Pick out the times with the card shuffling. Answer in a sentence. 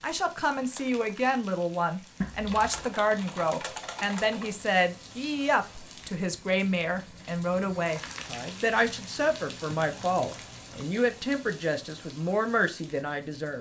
You can hear the card shuffling from 2.2 to 3.0 s.